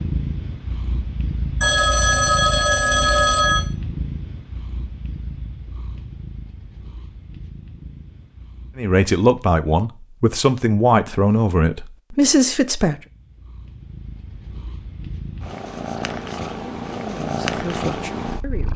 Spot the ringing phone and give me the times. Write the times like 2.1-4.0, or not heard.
1.6-3.6.